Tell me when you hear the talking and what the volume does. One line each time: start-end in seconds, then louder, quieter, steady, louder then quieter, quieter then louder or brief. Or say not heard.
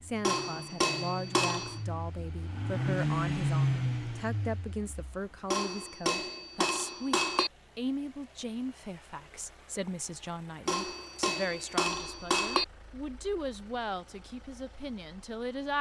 0.0-15.7 steady.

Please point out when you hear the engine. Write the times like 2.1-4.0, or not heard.
0.0-15.7.